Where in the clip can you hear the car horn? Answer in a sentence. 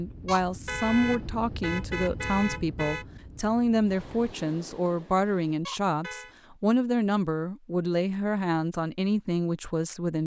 You can hear the car horn from 0.2 to 3.0 s and from 5.7 to 6.3 s.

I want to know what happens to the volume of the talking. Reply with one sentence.
The volume of the talking stays about the same.